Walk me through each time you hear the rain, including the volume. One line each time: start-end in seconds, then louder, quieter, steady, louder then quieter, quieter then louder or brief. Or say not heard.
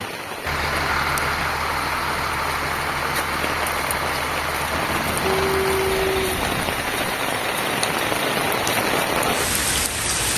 0.0-10.3 louder.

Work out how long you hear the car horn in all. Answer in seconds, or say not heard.
2 s.